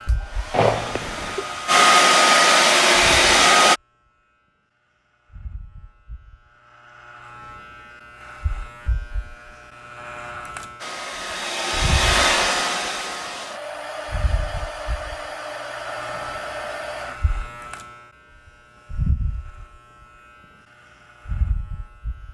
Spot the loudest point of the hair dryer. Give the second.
2 s.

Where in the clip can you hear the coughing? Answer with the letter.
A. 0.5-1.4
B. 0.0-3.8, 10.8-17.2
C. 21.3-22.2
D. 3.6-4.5
A.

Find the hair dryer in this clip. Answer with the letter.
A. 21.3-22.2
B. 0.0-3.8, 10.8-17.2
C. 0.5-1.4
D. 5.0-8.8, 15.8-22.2
B.